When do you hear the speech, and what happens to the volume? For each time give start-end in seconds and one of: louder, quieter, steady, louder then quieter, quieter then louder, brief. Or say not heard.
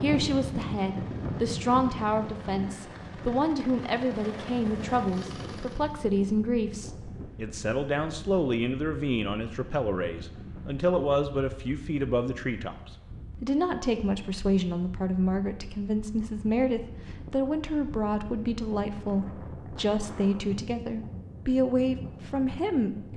0.0-23.1 steady.